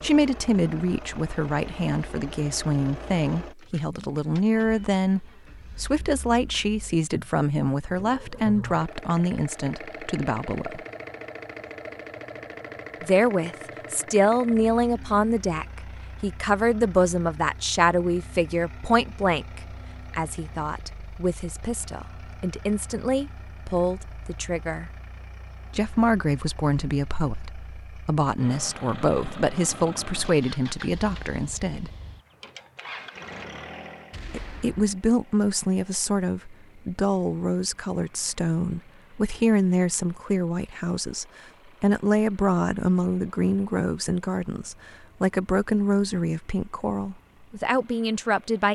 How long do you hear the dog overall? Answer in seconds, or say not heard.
not heard.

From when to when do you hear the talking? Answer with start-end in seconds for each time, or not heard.
0.0-10.8, 13.0-24.9, 25.8-31.9, 34.3-48.6.